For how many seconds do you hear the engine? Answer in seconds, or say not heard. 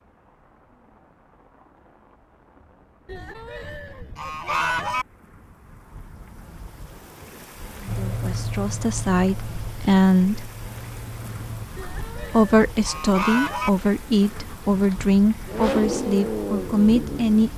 7 s.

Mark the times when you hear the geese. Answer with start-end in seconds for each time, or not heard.
3.0-5.0, 11.8-13.7.